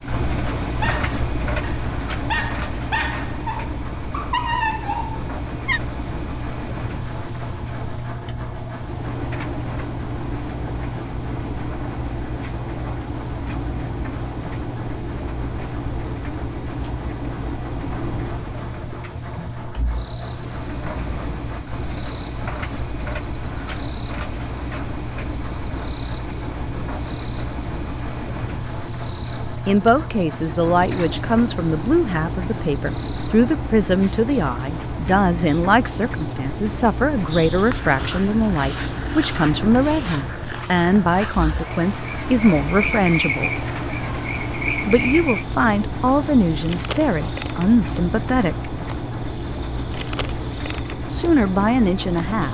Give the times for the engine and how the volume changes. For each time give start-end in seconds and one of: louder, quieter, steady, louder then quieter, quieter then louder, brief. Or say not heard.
0.0-52.4 steady.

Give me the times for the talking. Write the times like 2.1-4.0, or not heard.
29.6-43.5, 44.9-48.7, 51.1-52.4.